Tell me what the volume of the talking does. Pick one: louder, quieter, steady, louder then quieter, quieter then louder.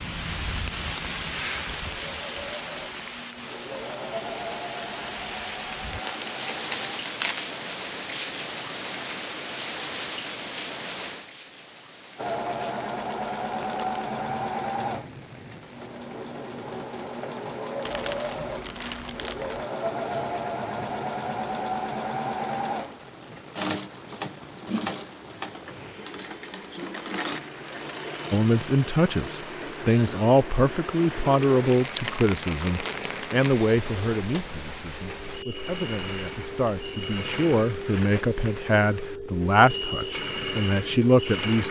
quieter then louder.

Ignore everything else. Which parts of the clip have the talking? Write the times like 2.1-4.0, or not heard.
28.3-41.6.